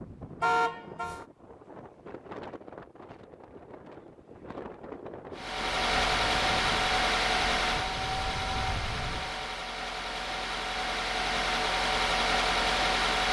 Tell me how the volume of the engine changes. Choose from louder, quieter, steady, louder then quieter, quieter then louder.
quieter then louder.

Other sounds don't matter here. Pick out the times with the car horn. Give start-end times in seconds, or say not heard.
0.4-1.2.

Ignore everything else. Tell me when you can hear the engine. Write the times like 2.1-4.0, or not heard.
5.3-13.2.